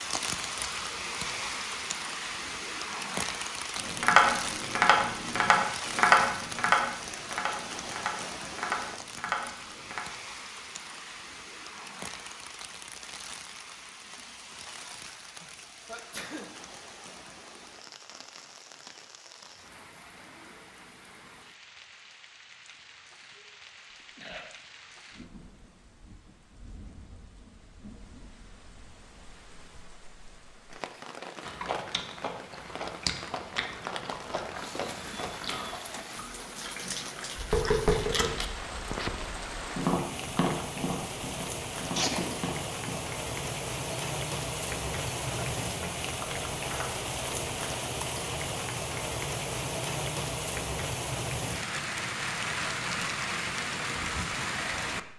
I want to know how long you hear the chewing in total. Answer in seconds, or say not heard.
7 s.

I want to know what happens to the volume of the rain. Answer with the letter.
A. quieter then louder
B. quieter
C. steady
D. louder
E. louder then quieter
A.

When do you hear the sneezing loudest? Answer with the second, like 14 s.
42 s.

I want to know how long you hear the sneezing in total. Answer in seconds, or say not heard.
3 s.